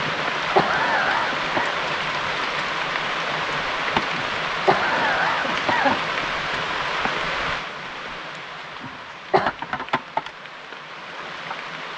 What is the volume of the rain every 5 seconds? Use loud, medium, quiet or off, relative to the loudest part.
loud, loud, medium.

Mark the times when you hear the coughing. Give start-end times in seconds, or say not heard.
0.1-1.8, 4.2-6.0, 8.8-9.6.